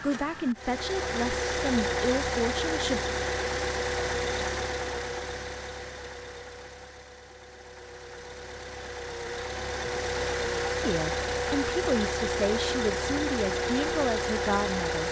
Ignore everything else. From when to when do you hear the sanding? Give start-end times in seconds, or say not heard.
not heard.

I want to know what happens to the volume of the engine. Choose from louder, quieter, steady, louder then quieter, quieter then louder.
quieter then louder.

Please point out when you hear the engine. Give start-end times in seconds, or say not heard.
0.0-15.0.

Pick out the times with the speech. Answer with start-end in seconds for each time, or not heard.
0.0-3.0, 10.8-15.0.